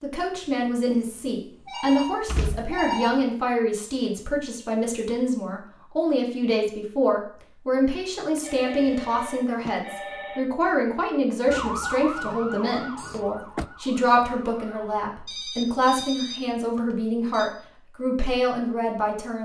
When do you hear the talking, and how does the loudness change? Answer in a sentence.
The talking can be heard from 0.0 to 19.3 s, at a steady volume.